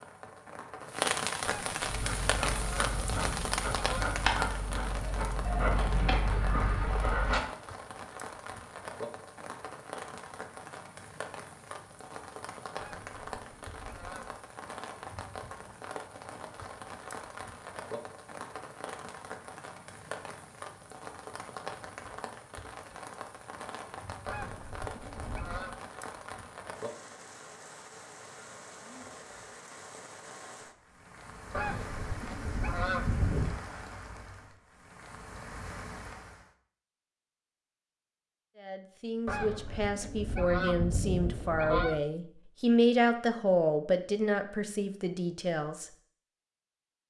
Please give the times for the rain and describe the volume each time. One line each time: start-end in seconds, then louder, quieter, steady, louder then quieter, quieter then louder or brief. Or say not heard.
0.0-36.5 quieter.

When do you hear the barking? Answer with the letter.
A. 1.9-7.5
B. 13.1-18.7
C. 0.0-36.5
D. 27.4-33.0
A.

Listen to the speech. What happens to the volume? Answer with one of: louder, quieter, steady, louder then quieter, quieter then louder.
louder then quieter.